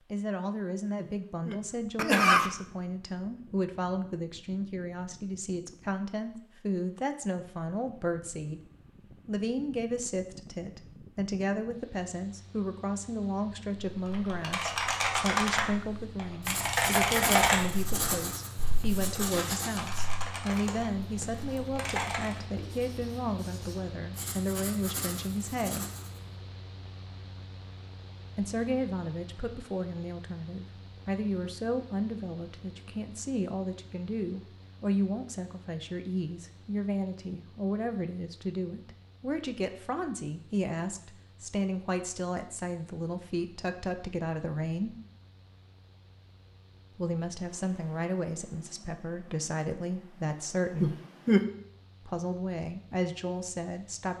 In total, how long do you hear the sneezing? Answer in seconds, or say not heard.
2 s.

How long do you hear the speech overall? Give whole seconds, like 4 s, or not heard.
48 s.